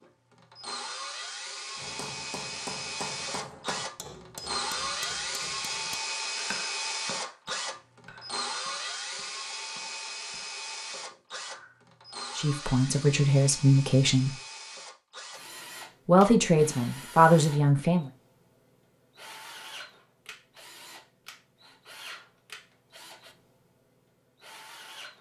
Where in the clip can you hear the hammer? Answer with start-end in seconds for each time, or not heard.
1.8-11.8.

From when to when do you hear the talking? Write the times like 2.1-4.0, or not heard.
12.3-14.3, 16.1-18.1.